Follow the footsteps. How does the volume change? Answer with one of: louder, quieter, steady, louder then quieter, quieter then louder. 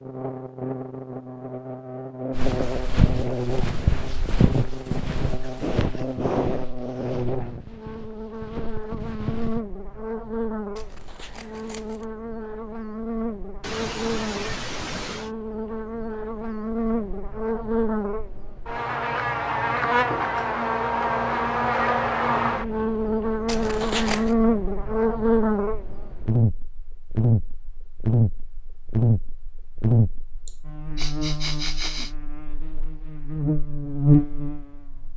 quieter.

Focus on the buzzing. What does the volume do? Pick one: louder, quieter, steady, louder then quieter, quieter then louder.
louder.